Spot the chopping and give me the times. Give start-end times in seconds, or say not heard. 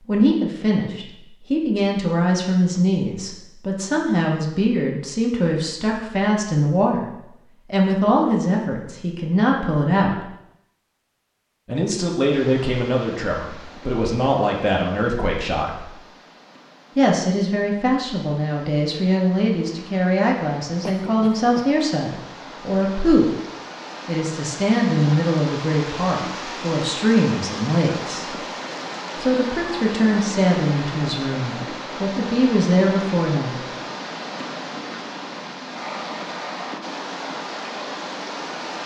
not heard.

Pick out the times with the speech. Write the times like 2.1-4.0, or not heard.
0.1-7.0, 7.7-10.2, 11.7-15.9, 16.9-23.4, 24.1-28.4, 29.1-33.6.